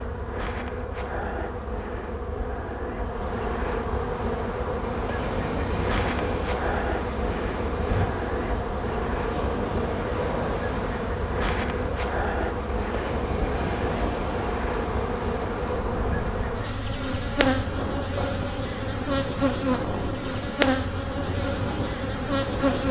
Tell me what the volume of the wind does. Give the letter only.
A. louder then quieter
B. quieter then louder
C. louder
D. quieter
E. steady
E.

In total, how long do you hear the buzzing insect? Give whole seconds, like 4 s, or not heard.
23 s.